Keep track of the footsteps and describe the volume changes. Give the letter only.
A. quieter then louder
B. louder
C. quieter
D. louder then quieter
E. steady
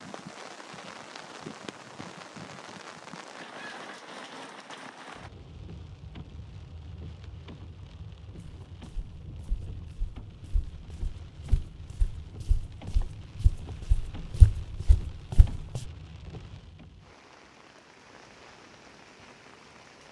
B.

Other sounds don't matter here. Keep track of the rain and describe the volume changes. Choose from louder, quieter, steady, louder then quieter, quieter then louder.
quieter.